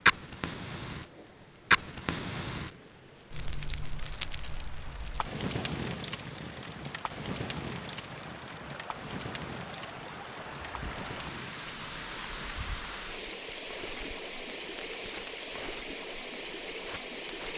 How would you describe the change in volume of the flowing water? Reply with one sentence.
The loudness of the flowing water goes up.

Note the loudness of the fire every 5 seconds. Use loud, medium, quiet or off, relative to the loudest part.
loud, medium, quiet, quiet.